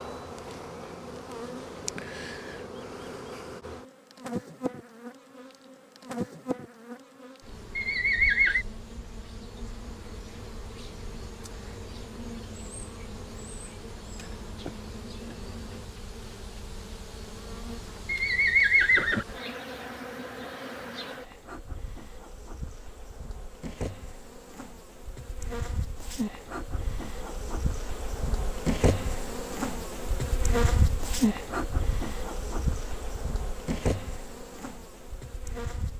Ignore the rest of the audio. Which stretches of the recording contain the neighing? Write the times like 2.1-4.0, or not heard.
7.8-8.7, 18.1-19.2.